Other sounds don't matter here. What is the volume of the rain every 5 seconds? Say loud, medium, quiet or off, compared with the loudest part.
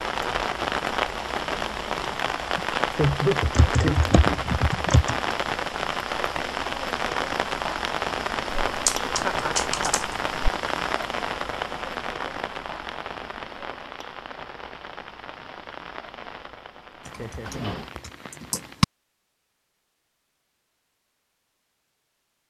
loud, loud, medium, quiet, off.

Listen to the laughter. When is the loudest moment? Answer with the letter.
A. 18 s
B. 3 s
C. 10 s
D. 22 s
B.